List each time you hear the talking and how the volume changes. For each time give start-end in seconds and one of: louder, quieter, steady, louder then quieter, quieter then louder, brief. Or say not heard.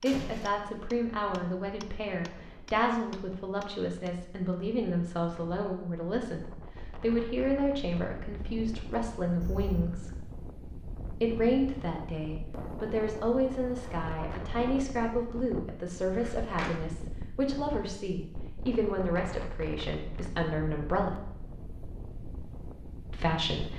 0.0-10.2 steady
11.2-21.1 steady
23.1-23.7 brief.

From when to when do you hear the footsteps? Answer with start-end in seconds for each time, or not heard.
not heard.